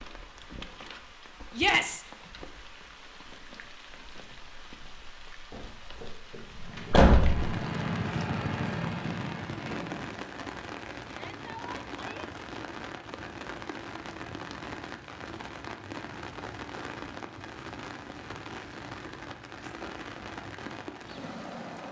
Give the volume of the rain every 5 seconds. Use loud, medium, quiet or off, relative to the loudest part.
medium, loud, loud, loud, loud.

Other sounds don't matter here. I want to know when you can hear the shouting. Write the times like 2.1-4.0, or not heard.
1.6-2.0, 11.1-12.3.